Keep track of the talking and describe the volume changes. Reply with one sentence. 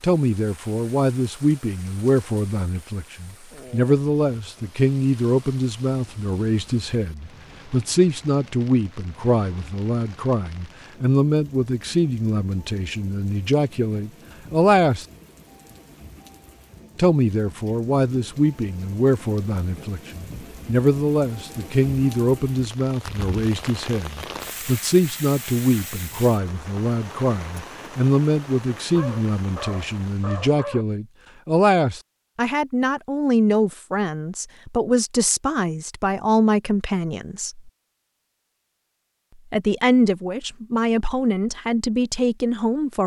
The loudness of the talking stays about the same.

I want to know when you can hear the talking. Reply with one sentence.
You can hear the talking from 0.0 to 15.1 s, from 16.9 to 37.7 s and from 39.5 to 43.0 s.